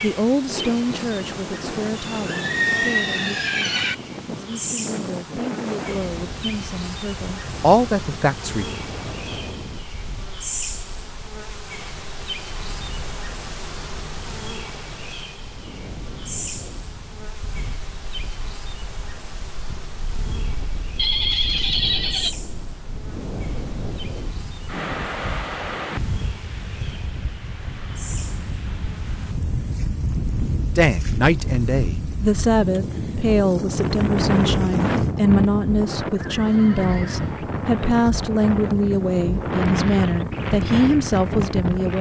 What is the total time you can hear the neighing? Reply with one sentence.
The neighing can be heard for 5 seconds in total.